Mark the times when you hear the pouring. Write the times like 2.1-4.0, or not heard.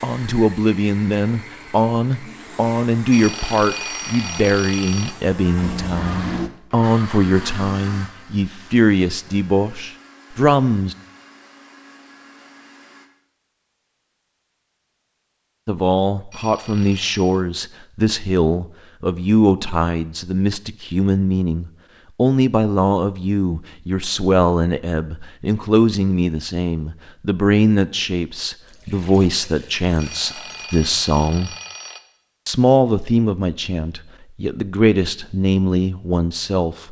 5.6-6.5, 28.6-30.7.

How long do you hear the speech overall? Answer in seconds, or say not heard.
31 s.